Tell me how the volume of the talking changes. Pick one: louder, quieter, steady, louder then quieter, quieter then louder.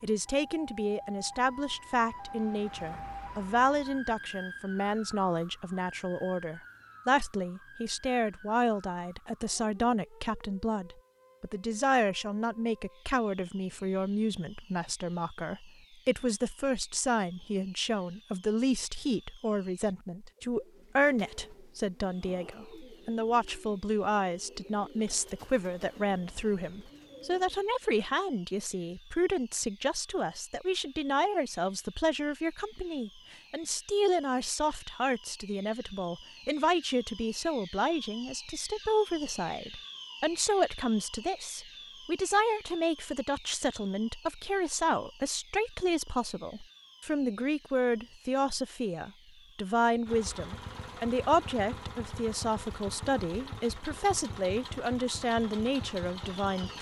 steady.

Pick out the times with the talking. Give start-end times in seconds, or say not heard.
0.0-56.7.